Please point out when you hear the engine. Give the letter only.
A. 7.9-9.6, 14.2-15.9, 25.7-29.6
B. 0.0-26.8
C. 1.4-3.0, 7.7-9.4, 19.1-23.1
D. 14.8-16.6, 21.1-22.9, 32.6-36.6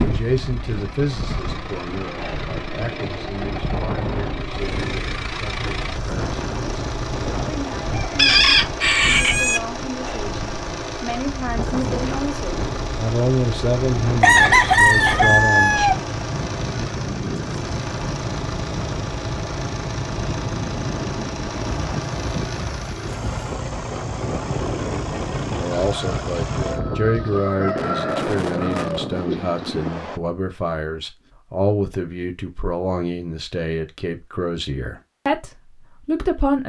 B.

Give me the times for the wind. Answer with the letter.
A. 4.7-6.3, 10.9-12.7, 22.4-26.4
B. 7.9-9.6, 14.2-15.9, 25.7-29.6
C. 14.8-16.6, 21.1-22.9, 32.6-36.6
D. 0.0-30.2
D.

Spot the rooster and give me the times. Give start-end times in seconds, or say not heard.
7.9-9.6, 14.2-15.9, 25.7-29.6.